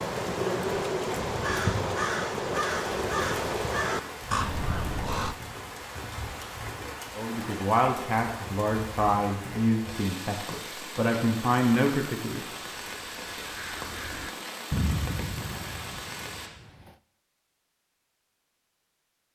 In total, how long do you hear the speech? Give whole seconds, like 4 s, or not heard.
5 s.